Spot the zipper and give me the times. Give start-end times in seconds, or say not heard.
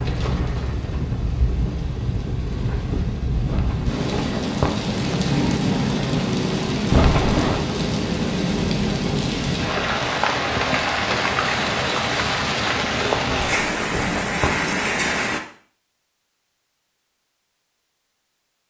3.5-4.7, 6.9-7.6, 13.2-14.7.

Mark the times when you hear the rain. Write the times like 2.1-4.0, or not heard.
0.0-15.4.